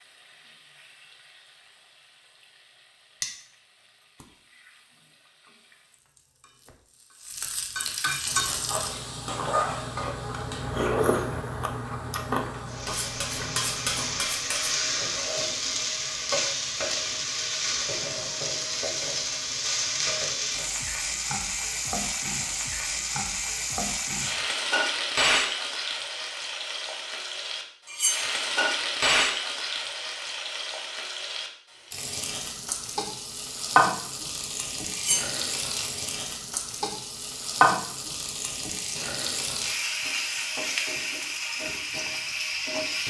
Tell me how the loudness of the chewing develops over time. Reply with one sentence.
The loudness of the chewing goes up, then down.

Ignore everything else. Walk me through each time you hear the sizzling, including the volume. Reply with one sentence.
The sizzling can be heard from 0.0 to 43.0 s, getting louder.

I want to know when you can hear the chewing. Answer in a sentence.
You can hear the chewing from 8.2 to 14.2 s.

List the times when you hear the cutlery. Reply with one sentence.
The cutlery can be heard from 12.8 to 14.8 s, from 27.9 to 28.4 s and from 34.9 to 35.4 s.